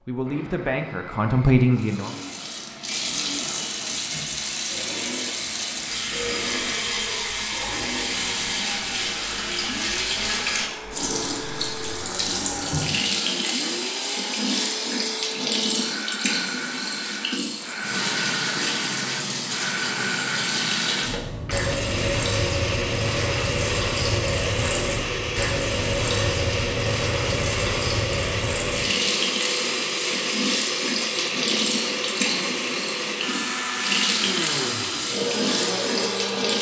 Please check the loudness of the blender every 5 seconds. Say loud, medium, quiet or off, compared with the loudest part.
quiet, medium, medium, medium, loud, loud, loud, loud.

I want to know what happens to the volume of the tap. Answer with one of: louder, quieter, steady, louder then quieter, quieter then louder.
steady.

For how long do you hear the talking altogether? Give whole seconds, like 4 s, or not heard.
2 s.